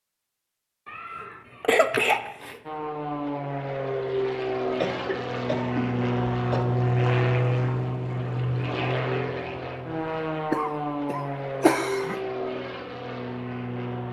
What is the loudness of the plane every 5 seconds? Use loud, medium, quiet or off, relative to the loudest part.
loud, loud, medium.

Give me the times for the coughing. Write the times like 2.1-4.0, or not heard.
0.8-2.5, 4.8-6.7, 10.5-12.2.